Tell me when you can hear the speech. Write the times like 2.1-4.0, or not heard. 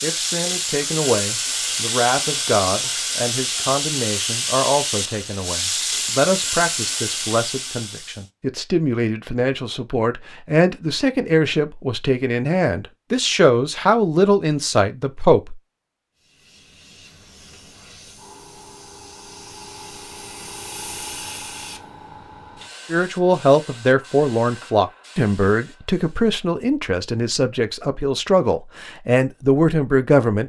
0.0-15.6, 22.9-30.4.